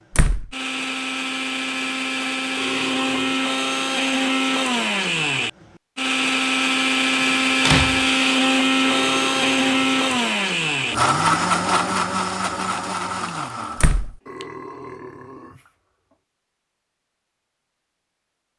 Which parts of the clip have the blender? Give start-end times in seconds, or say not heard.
0.5-14.4.